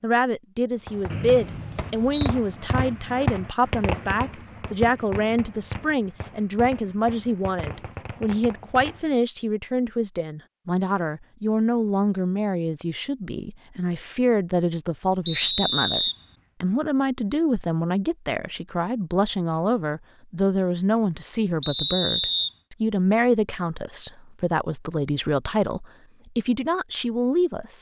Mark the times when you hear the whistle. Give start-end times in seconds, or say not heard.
1.1-2.3, 15.2-16.1, 21.6-22.5.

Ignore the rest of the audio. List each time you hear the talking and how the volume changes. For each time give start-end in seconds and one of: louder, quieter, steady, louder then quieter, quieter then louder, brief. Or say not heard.
0.0-27.7 steady.